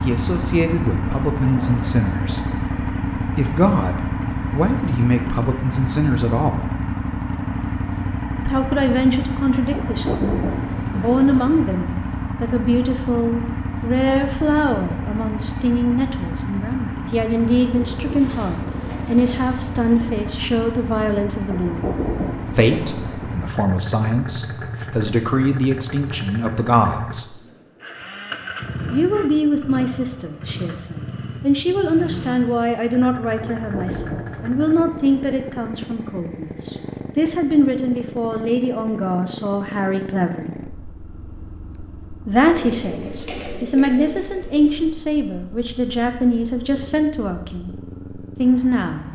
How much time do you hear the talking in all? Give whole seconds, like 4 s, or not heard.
43 s.